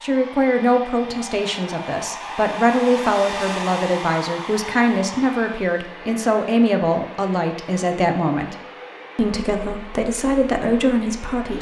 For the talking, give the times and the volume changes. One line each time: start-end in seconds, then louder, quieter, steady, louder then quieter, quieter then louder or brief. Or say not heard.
0.0-8.6 steady
9.2-11.5 brief.